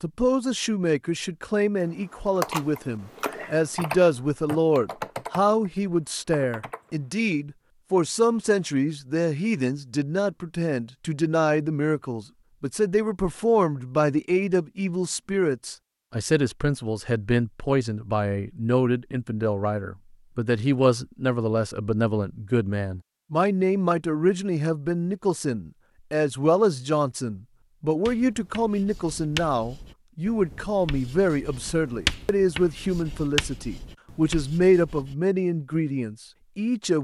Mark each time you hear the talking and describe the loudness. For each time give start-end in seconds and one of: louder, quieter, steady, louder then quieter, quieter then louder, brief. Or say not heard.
0.0-36.9 steady.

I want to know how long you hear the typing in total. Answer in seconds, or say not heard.
5 s.